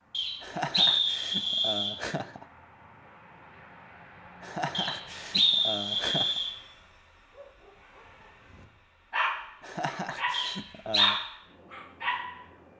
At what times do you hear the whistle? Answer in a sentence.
The whistle can be heard from 0.1 to 1.9 s, from 4.7 to 6.5 s and from 10.3 to 11.2 s.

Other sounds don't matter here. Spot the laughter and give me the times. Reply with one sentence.
The laughter can be heard from 0.4 to 2.5 s, from 4.4 to 6.4 s and from 9.6 to 11.2 s.